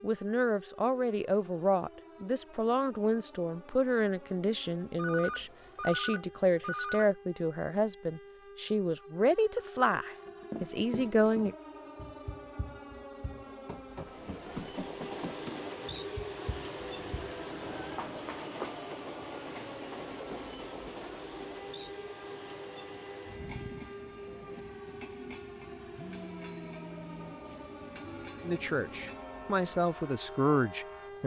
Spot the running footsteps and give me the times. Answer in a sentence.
You can hear the running footsteps from 10.2 to 18.8 s.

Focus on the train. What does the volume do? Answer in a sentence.
The loudness of the train goes down.